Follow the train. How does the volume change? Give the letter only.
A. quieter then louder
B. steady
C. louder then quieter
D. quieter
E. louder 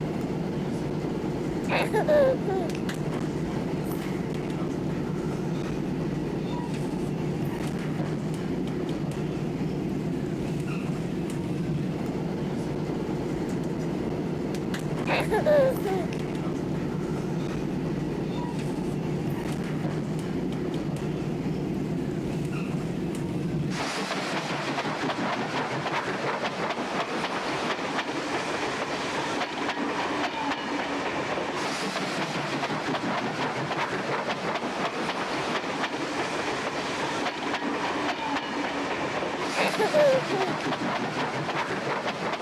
B.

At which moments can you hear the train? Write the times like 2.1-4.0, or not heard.
0.0-42.3.